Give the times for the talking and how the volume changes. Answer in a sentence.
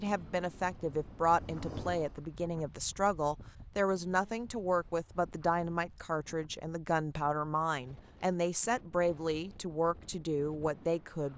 The talking can be heard from 0.0 to 11.3 s, at a steady volume.